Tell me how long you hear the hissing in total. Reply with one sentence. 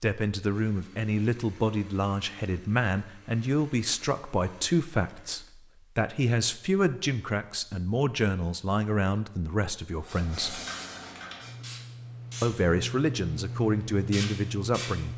The hissing can be heard for 5 seconds in total.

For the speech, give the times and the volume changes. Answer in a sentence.
The speech can be heard from 0.0 to 10.6 s, at a steady volume; and briefly from 12.4 to 15.1 s.